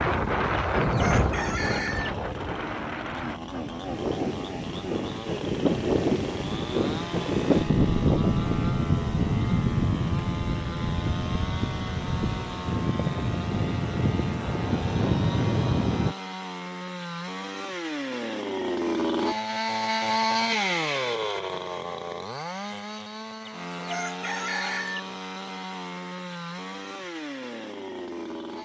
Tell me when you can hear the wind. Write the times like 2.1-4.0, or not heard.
0.0-16.1.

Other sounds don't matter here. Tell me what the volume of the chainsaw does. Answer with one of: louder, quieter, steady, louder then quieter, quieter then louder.
louder then quieter.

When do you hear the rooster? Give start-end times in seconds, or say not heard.
0.8-2.1, 23.6-25.0.